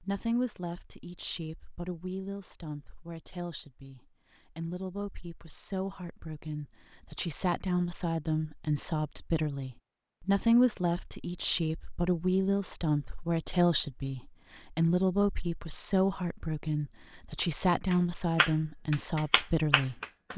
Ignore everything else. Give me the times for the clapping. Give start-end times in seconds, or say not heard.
17.9-20.3.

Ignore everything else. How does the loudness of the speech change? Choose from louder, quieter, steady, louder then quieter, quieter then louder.
louder.